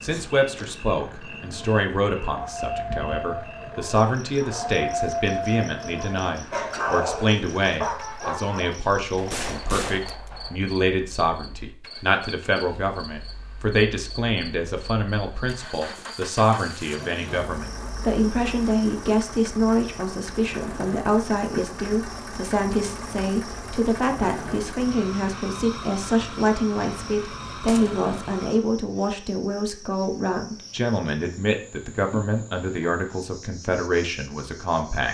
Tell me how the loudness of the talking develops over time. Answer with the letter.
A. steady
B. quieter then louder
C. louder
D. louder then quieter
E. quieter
A.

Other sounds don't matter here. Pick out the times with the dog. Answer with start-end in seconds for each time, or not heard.
1.3-8.8.